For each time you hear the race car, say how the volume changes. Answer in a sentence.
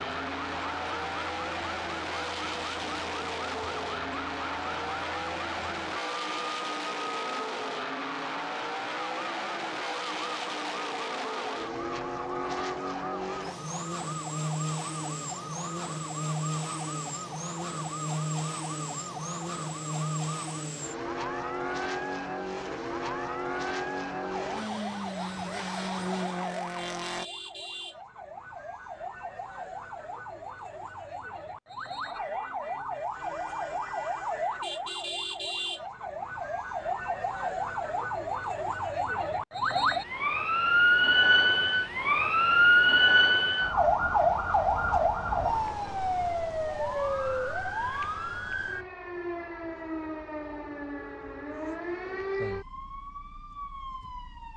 The race car can be heard from 0.0 to 27.2 s, at a steady volume.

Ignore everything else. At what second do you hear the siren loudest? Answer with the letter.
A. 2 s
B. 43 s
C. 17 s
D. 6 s
B.